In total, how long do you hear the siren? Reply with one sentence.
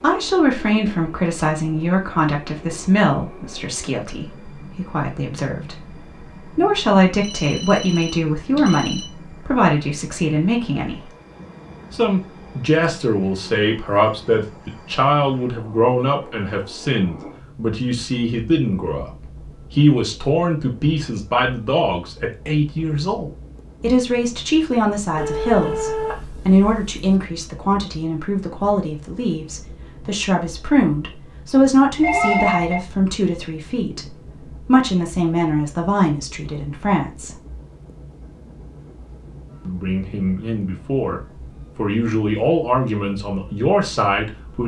The siren can't be heard in this clip.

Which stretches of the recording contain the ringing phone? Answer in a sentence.
The ringing phone can be heard from 7.2 to 9.1 s, from 25.1 to 27.0 s and from 31.9 to 32.8 s.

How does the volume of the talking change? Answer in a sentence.
The loudness of the talking stays about the same.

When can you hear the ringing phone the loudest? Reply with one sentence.
The loudest moment of the ringing phone is at 32 seconds.